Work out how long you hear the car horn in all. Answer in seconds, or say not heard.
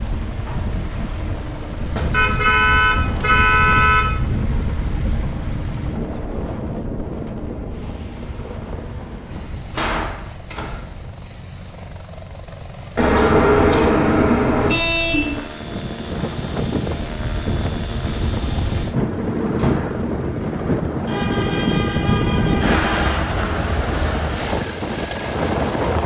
7 s.